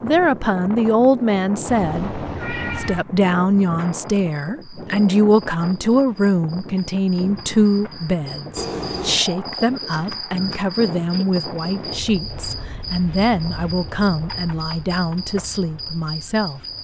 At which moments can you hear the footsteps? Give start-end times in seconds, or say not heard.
not heard.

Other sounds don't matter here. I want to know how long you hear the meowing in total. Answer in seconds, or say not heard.
2 s.